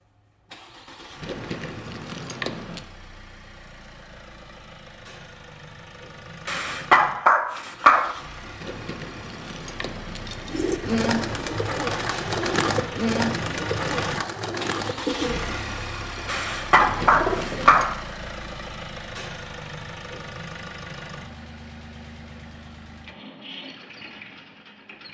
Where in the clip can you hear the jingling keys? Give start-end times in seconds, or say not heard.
1.2-2.9, 8.6-10.6, 16.7-17.9.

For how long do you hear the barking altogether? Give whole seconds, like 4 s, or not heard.
3 s.